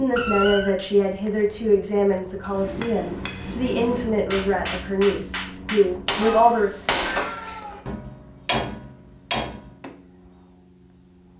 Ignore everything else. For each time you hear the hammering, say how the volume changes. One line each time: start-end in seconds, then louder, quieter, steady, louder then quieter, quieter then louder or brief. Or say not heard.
2.5-9.9 louder.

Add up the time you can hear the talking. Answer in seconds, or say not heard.
7 s.